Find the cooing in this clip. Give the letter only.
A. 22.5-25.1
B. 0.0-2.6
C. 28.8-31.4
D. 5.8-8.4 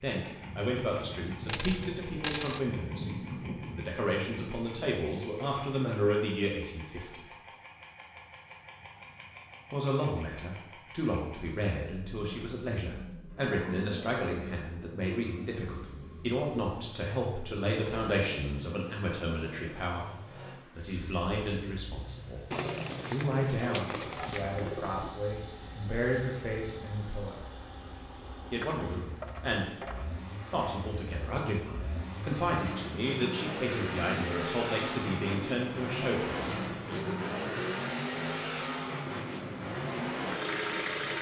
A.